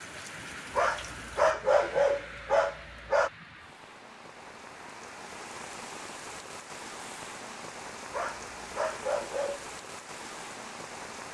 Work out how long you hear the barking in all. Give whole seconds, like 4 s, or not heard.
4 s.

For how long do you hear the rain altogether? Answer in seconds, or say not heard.
11 s.